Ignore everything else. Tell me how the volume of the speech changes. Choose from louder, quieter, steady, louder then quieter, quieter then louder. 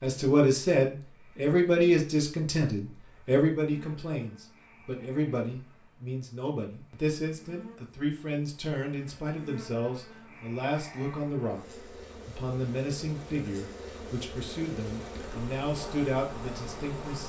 quieter.